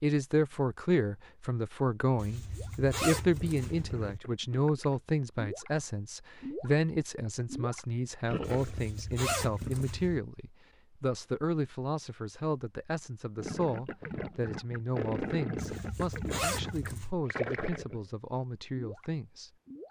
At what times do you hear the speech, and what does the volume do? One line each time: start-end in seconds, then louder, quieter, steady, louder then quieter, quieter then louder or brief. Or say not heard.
0.0-19.5 quieter.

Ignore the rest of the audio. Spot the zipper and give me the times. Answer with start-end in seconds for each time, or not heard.
2.1-4.2, 8.4-10.2, 15.6-17.1.